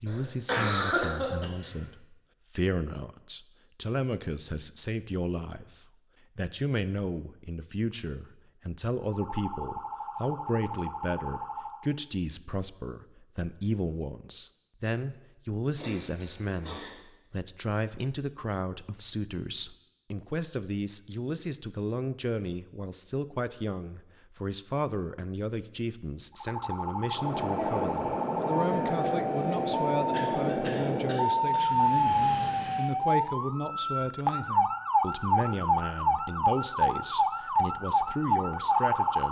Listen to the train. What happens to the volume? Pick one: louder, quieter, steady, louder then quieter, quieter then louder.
quieter.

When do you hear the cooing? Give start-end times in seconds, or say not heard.
not heard.